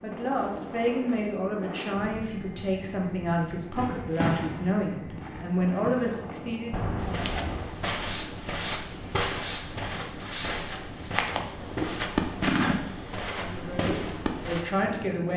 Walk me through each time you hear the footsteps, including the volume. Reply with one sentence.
You can hear the footsteps from 7.0 to 14.7 s, at a steady volume.